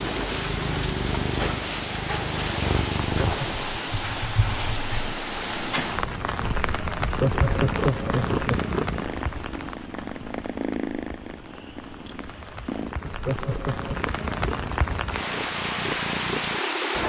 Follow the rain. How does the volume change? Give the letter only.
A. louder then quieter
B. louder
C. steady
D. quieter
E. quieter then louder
E.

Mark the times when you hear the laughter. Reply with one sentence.
The laughter can be heard from 3.2 to 3.6 s, from 7.0 to 8.7 s and from 13.1 to 13.9 s.